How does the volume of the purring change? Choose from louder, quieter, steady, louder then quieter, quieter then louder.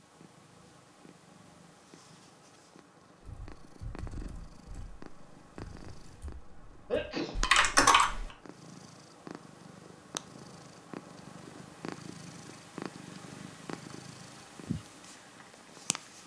louder.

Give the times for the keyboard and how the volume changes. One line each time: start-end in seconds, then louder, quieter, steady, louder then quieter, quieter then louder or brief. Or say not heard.
3.2-8.2 quieter then louder.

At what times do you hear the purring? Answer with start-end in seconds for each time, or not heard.
0.0-16.2.